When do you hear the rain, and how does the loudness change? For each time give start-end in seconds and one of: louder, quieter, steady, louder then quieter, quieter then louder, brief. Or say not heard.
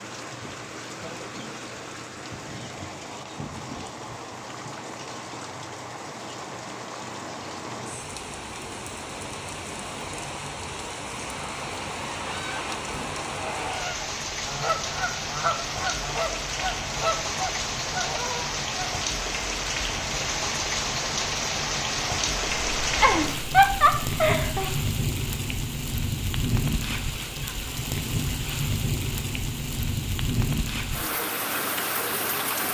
0.0-32.7 louder.